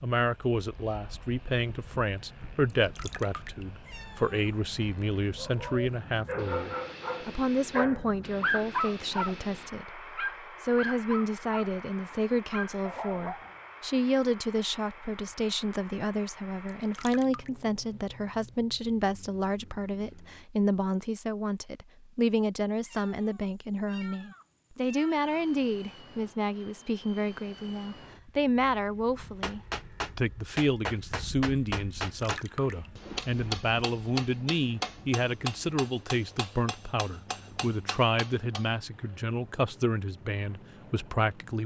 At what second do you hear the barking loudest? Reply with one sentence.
The volume of the barking peaks at 9 seconds.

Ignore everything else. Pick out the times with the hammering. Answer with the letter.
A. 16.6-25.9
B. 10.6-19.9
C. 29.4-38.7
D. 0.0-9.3
C.